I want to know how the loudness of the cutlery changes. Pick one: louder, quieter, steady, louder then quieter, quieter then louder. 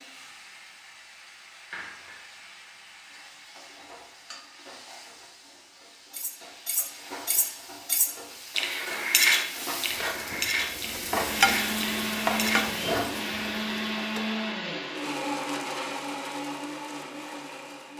louder then quieter.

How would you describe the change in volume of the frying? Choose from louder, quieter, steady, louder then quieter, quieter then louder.
louder.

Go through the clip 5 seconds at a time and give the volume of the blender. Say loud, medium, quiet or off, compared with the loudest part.
off, off, loud, loud.